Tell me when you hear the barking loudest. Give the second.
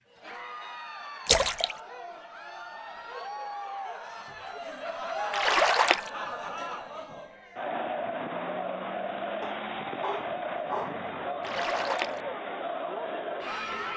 11 s.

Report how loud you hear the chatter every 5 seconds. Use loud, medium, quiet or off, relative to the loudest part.
medium, loud, loud.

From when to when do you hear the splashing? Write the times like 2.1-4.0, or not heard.
1.2-1.8, 5.3-6.1, 11.4-12.2.